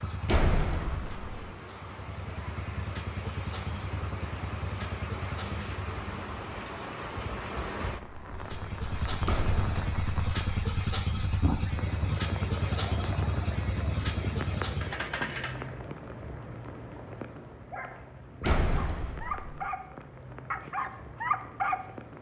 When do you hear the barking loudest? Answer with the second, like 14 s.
21 s.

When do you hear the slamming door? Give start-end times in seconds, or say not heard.
0.2-1.5, 9.2-9.8, 18.4-19.7.